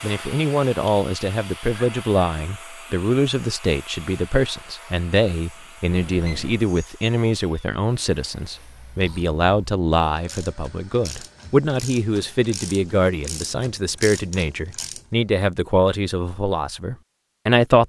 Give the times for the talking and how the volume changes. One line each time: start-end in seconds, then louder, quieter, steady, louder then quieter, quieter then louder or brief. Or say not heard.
0.0-17.8 steady.